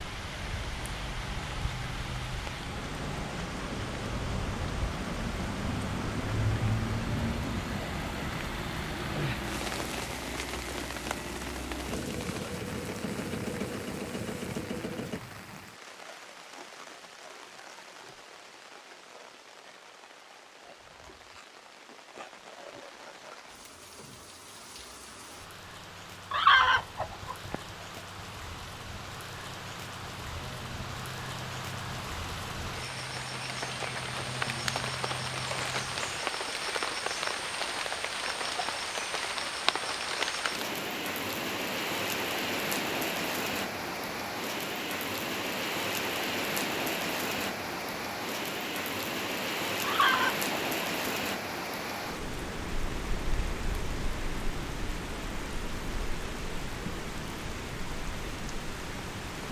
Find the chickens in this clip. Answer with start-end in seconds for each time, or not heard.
26.3-28.0, 49.8-51.1.